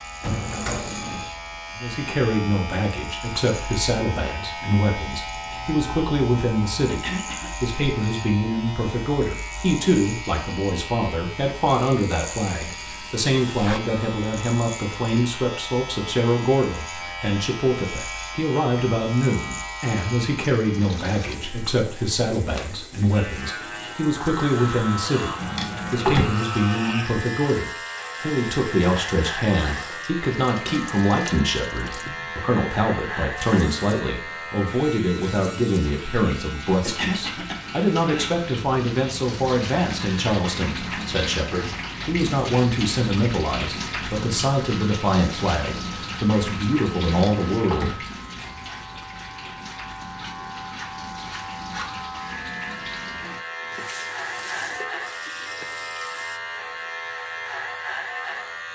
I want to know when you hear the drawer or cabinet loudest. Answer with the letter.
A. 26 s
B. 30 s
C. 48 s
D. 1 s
A.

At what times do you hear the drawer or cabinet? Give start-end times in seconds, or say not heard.
0.2-1.2, 25.4-26.3, 47.0-48.0.